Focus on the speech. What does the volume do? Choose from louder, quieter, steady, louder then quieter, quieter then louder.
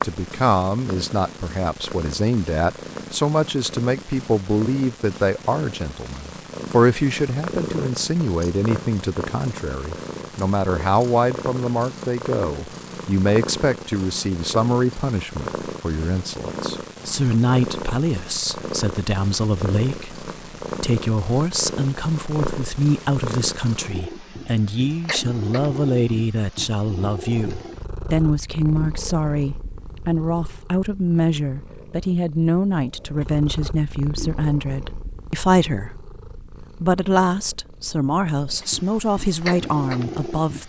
steady.